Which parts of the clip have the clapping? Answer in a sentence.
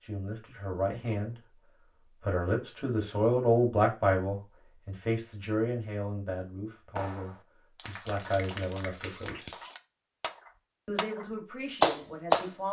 The clapping can be heard from 7.0 to 12.5 s.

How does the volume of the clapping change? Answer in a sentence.
The loudness of the clapping goes up.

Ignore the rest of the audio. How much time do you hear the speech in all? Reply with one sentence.
The speech can be heard for 11 seconds in total.